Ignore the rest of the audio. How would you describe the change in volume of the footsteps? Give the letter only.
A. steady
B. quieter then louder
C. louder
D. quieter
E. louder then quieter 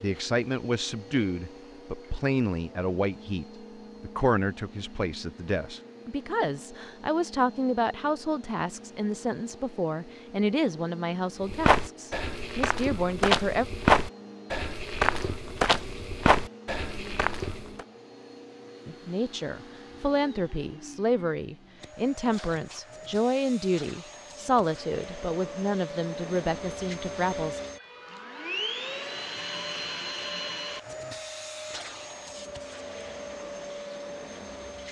E.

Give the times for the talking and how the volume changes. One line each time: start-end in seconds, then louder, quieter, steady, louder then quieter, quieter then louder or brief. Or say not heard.
0.0-13.7 steady
18.9-27.6 steady.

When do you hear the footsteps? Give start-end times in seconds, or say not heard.
11.4-17.9.